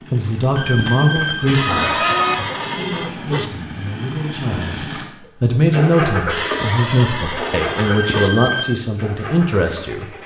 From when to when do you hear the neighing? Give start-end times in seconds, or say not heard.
1.4-3.5, 6.2-8.3.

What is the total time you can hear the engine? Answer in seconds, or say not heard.
10 s.